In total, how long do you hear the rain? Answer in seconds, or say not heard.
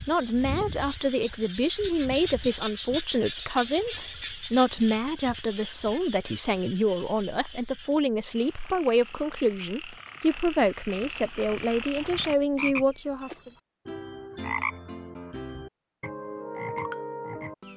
not heard.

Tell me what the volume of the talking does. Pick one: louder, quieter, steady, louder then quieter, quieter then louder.
steady.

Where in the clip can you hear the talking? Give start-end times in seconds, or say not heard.
0.1-13.5.